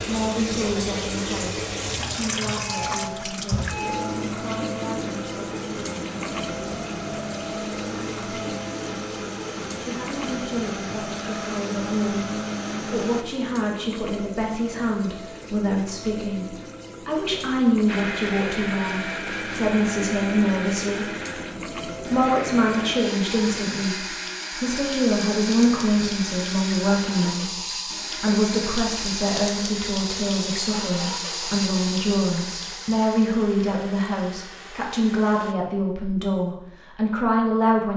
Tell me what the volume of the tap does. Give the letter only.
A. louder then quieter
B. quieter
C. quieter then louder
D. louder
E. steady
C.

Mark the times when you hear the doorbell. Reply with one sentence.
The doorbell can be heard from 2.6 to 4.2 s.